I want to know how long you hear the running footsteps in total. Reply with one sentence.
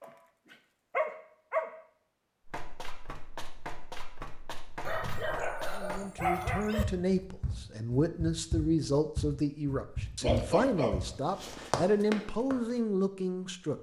The running footsteps can be heard for 10 seconds in total.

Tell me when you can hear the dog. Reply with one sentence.
You can hear the dog from 0.0 to 1.8 s, from 4.8 to 6.8 s and from 10.2 to 11.8 s.